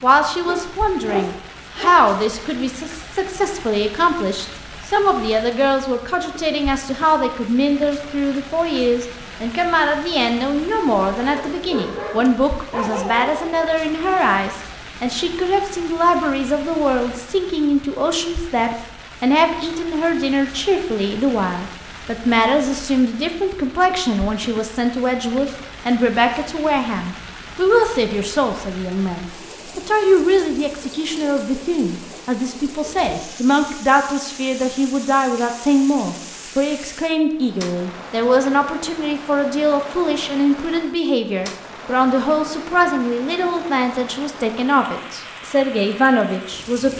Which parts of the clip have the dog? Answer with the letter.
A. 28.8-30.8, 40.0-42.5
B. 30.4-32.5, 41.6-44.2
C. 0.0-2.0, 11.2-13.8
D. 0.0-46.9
C.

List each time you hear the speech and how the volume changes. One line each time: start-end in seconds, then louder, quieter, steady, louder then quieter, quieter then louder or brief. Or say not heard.
0.0-46.9 steady.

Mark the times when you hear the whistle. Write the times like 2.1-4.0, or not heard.
not heard.